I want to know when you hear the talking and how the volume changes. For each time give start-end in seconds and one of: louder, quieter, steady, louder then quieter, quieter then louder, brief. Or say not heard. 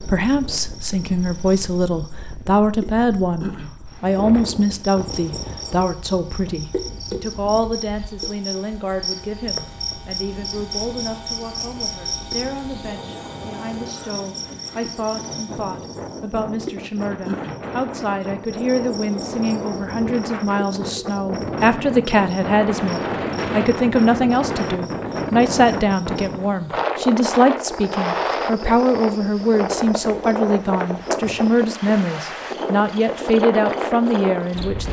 0.0-34.8 quieter then louder.